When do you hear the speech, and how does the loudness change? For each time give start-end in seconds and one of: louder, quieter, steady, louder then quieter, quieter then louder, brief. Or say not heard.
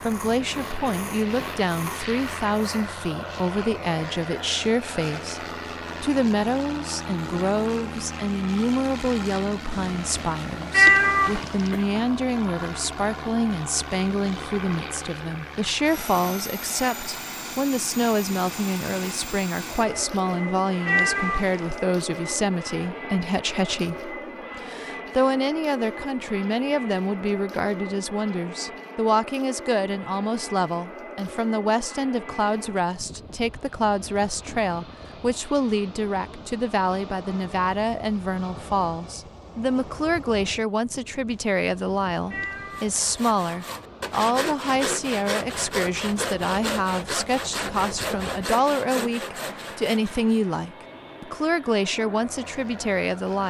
0.0-53.4 steady.